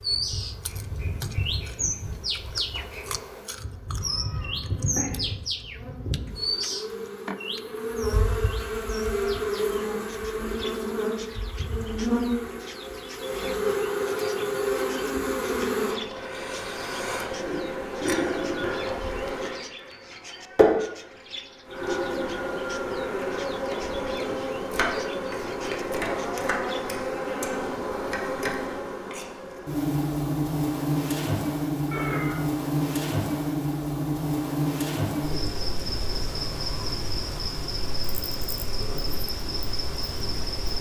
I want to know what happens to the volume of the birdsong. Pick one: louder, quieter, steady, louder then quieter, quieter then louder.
quieter.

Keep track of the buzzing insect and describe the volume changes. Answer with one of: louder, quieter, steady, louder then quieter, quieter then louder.
louder.